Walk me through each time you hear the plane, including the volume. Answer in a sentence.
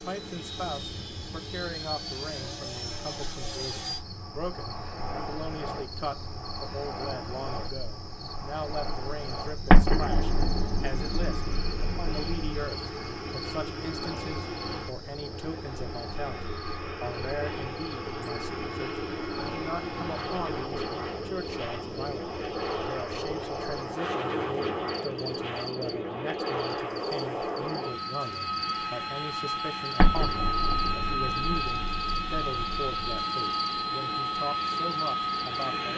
The plane can be heard from 0.0 to 35.9 s, getting louder.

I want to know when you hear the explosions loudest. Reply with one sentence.
The loudest moment of the explosions is at 10 seconds.